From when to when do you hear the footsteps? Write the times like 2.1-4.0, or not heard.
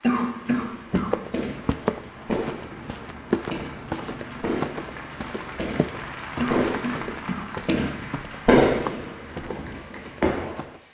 0.8-10.8.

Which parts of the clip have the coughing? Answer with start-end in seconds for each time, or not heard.
0.0-1.2, 6.3-7.5.